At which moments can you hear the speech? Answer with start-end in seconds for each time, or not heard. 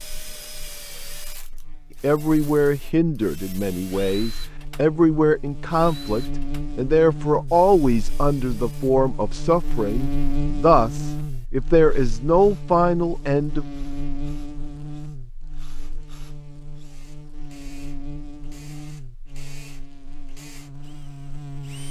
2.0-13.7.